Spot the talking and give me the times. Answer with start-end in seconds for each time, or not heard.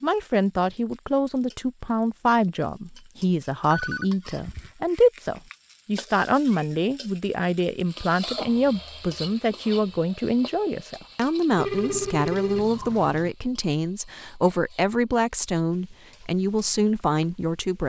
0.0-17.8.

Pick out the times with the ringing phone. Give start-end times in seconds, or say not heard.
3.7-4.7, 11.6-13.3.